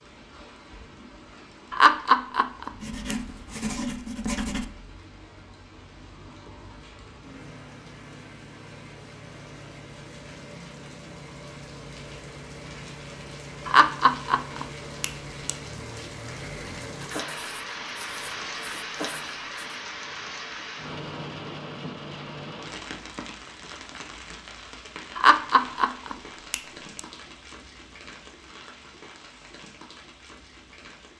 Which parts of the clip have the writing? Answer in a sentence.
The writing can be heard from 2.8 to 4.7 s and from 17.0 to 19.8 s.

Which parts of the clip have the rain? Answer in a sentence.
You can hear the rain from 0.0 to 31.1 s.